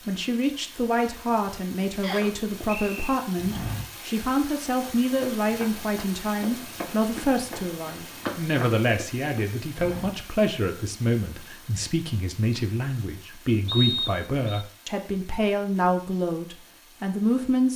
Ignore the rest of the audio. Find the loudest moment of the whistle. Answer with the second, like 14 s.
14 s.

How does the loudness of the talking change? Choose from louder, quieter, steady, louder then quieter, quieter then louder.
steady.